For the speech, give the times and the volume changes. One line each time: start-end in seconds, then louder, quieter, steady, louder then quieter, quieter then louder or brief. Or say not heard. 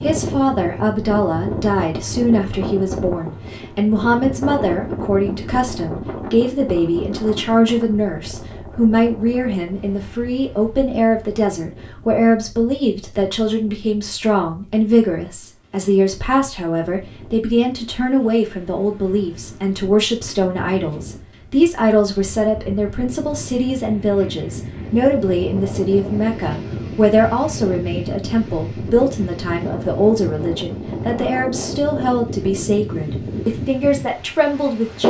0.0-35.0 steady.